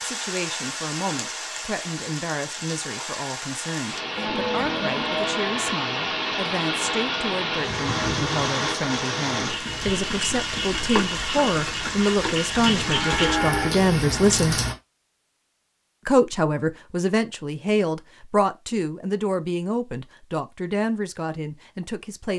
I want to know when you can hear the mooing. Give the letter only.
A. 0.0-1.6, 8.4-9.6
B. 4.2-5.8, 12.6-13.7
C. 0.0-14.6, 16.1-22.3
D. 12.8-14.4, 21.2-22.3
B.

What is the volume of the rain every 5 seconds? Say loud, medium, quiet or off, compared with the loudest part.
medium, loud, loud, off, off.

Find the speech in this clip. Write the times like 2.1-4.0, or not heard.
0.0-14.6, 16.1-22.3.